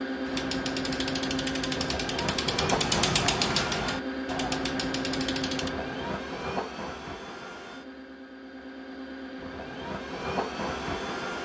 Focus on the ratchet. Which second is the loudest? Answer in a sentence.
The volume of the ratchet peaks at 3 seconds.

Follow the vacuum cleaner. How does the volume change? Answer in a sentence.
The loudness of the vacuum cleaner goes down, then up.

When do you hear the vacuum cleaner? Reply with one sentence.
You can hear the vacuum cleaner from 0.0 to 11.4 s.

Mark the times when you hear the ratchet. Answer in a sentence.
You can hear the ratchet from 0.2 to 5.8 s.